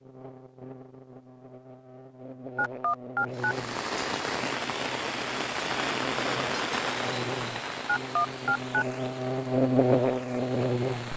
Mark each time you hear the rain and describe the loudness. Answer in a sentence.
You can hear the rain from 3.3 to 11.1 s, getting quieter.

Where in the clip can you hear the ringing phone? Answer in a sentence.
You can hear the ringing phone from 2.5 to 3.5 s and from 7.8 to 8.8 s.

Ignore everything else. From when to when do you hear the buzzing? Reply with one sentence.
The buzzing can be heard from 0.0 to 11.1 s.